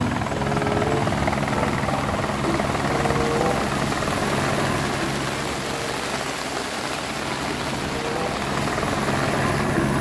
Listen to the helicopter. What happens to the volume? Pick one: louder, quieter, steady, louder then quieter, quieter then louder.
quieter then louder.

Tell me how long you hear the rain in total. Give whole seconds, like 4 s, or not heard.
10 s.